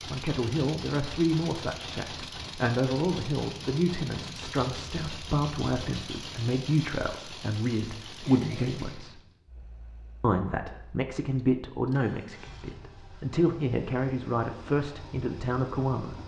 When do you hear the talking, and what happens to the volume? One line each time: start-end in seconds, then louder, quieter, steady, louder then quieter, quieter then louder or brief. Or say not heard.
0.1-9.2 steady
10.2-16.2 steady.